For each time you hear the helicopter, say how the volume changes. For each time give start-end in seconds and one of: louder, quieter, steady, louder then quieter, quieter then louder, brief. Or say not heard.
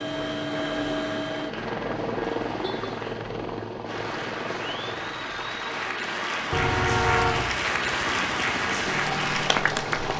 0.0-10.1 quieter then louder.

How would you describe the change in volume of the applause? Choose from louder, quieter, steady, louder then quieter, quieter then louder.
louder.